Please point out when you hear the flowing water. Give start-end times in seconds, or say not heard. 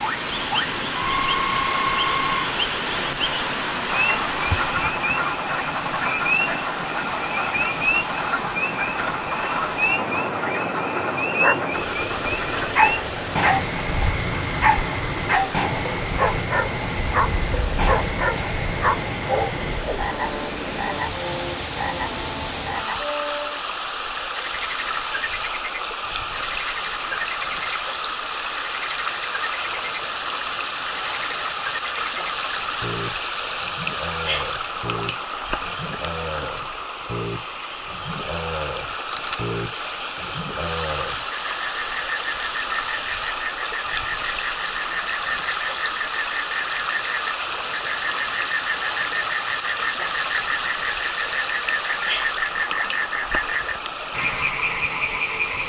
0.0-55.6.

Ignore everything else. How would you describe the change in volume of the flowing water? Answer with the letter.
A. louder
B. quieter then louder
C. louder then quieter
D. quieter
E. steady
E.